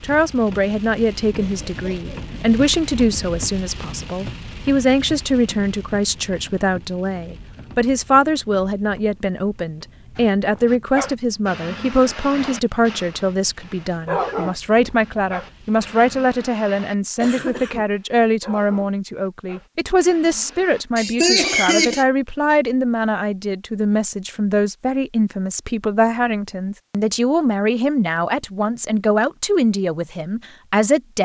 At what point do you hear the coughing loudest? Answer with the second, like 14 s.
21 s.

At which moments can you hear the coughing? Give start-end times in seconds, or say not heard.
1.4-2.1, 17.2-17.9, 20.9-22.1.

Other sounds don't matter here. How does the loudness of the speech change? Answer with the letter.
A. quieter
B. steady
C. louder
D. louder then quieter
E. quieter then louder
B.